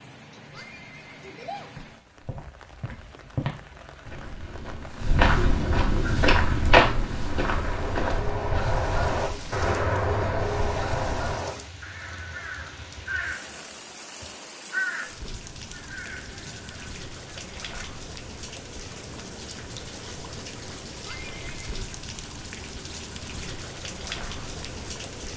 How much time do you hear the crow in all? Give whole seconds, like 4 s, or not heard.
12 s.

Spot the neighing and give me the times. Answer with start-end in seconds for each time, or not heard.
0.5-1.7, 21.0-21.6.